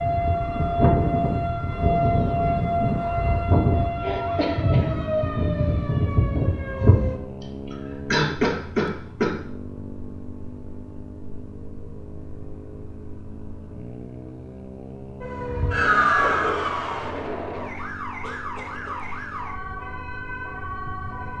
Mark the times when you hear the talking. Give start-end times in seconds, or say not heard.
not heard.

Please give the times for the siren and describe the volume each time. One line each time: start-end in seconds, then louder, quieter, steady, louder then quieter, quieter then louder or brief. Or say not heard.
0.0-7.2 steady
15.2-21.3 quieter.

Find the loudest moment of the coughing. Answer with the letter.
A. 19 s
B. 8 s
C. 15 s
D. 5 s
B.